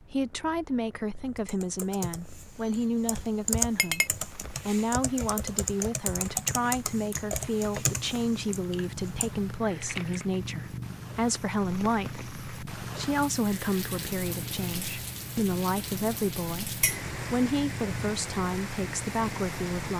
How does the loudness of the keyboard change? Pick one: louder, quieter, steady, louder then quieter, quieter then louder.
louder then quieter.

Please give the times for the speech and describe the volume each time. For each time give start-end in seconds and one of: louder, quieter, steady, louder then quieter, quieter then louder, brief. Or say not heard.
0.1-19.9 steady.